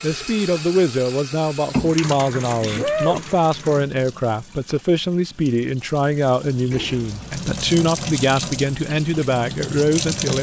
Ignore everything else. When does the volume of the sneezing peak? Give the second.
3 s.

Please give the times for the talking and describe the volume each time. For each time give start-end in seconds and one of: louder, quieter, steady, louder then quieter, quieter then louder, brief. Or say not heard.
0.0-10.3 steady.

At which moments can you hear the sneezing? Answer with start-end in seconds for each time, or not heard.
2.3-3.2, 6.7-7.5.